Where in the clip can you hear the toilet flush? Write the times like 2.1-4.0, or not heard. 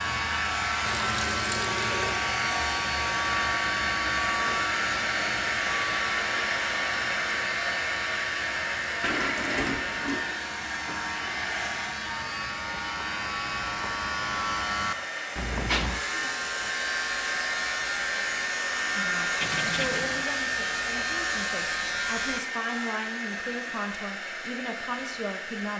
0.8-2.2, 9.0-10.2, 19.4-20.2.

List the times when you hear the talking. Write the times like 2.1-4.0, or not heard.
18.9-25.7.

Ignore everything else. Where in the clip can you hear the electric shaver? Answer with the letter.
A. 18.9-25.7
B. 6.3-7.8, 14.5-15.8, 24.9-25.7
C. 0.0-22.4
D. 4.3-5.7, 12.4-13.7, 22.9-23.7
C.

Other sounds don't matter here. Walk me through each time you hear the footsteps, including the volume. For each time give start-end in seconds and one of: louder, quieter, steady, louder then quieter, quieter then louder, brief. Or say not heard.
not heard.